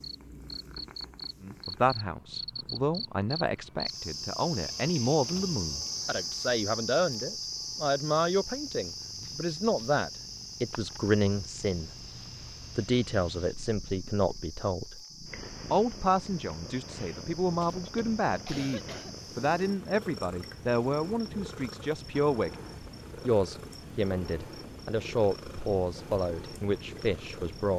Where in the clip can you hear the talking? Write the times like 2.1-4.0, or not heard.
1.4-11.9, 12.8-14.9, 15.7-22.5, 23.2-27.7.